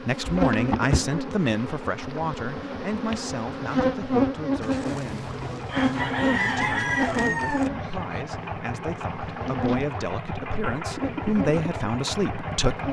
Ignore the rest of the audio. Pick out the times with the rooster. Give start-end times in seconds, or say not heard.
4.6-7.7.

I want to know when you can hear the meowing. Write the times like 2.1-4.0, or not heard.
not heard.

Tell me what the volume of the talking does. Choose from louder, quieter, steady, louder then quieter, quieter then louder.
quieter then louder.